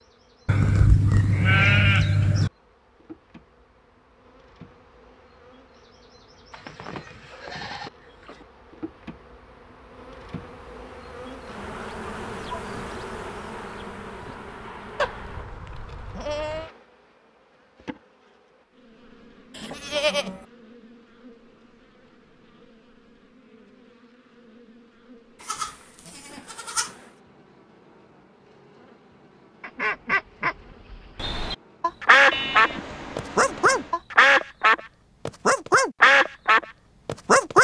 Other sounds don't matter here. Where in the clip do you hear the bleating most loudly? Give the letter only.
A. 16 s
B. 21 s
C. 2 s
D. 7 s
C.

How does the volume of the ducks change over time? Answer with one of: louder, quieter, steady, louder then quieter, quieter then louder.
louder.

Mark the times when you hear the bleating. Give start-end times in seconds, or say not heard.
0.5-2.5, 6.5-8.4, 14.9-16.7, 19.6-20.4, 25.4-26.9, 32.3-34.0.